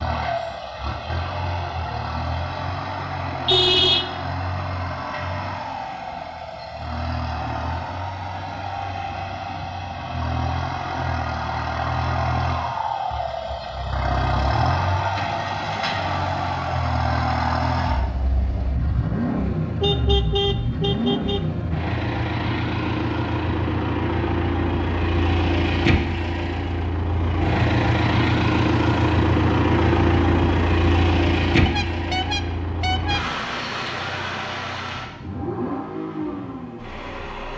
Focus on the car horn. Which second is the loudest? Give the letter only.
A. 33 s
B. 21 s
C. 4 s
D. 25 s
C.